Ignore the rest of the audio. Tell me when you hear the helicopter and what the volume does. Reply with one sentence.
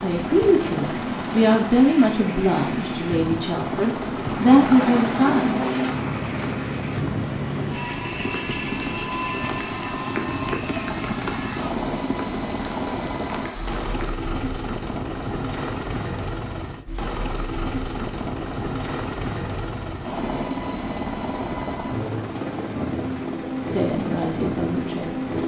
The helicopter can be heard from 0.0 to 25.4 s, at a steady volume.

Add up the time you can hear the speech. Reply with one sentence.
You can hear the speech for 7 seconds altogether.